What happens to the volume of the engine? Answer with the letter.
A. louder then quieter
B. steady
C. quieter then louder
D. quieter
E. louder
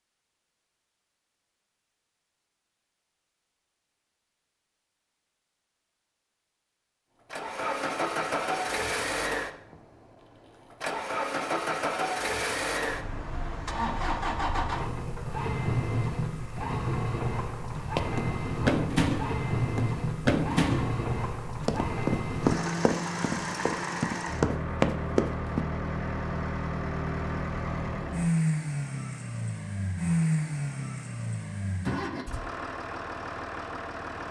B.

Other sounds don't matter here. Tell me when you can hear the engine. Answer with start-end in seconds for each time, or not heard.
7.3-34.2.